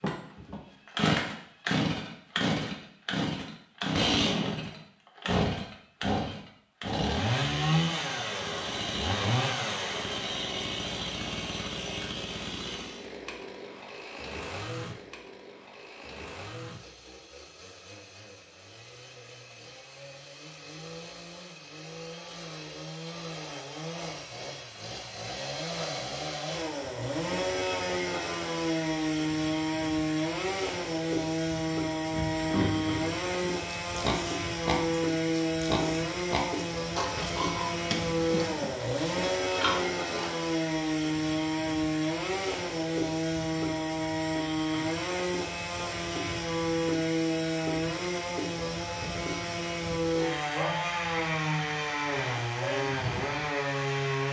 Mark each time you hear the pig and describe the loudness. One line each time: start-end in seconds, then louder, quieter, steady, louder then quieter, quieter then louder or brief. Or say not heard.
32.0-40.3 steady.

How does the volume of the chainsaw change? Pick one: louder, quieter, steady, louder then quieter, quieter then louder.
quieter then louder.